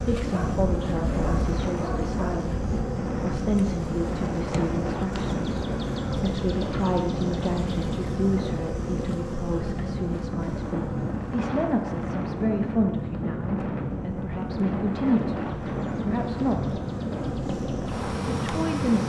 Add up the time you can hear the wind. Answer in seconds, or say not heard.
19 s.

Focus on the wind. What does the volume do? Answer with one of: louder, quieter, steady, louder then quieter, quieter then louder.
steady.